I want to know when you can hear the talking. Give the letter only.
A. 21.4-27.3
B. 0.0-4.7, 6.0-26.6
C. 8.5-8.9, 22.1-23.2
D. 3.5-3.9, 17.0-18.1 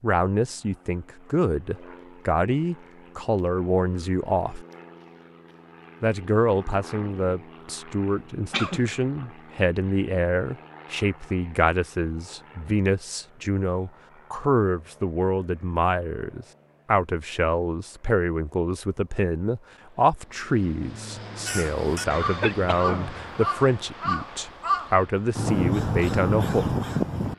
B.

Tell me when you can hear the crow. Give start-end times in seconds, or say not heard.
21.4-27.3.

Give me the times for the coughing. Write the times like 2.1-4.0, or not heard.
8.5-8.9, 22.1-23.2.